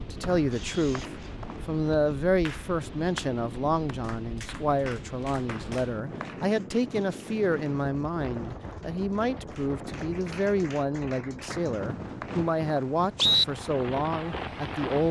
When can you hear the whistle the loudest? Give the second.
13 s.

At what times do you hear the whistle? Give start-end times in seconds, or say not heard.
0.2-1.9, 5.5-6.3, 11.5-13.4.